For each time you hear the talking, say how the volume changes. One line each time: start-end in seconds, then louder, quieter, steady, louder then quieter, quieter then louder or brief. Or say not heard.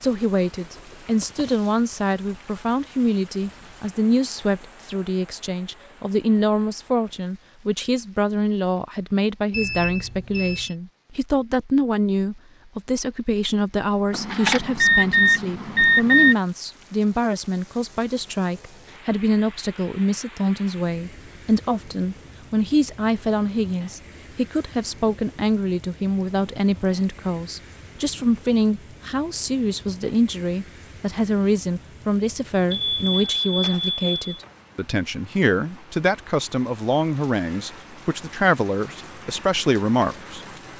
0.0-40.5 steady.